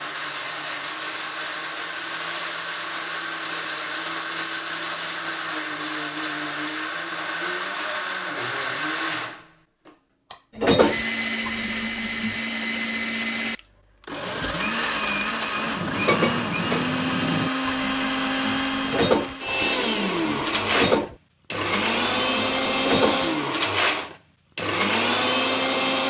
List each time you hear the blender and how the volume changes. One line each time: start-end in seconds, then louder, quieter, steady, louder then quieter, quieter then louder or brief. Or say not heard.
0.0-26.0 louder.